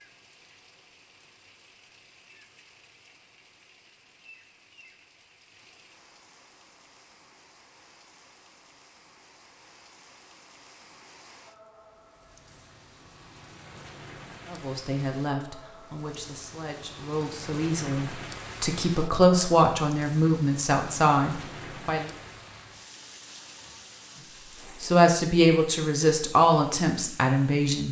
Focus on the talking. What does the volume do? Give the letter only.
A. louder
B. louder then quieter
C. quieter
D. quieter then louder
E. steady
A.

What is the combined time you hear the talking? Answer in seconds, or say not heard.
11 s.